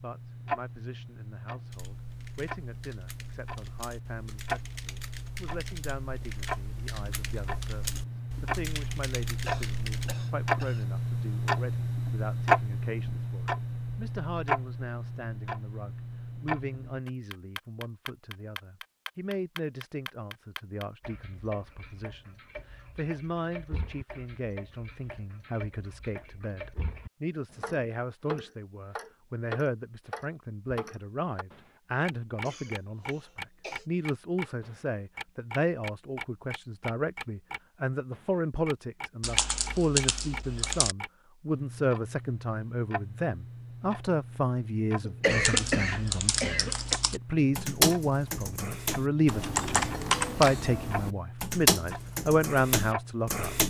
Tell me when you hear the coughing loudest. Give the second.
45 s.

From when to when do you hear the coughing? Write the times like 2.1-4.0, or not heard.
9.4-10.8, 32.5-33.9, 45.0-47.0.